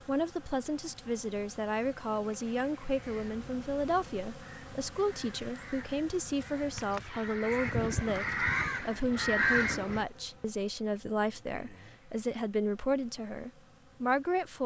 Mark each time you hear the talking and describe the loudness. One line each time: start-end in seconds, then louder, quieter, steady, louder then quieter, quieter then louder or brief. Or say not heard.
0.1-14.6 steady.